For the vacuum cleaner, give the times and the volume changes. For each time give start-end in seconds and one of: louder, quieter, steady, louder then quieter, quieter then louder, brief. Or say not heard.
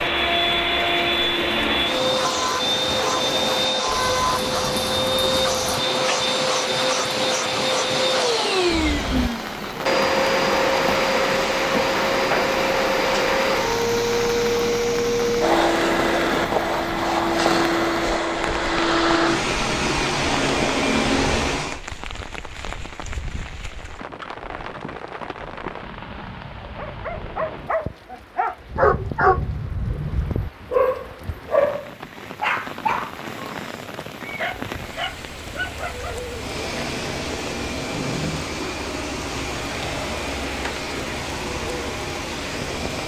0.0-21.8 steady
36.3-43.0 steady.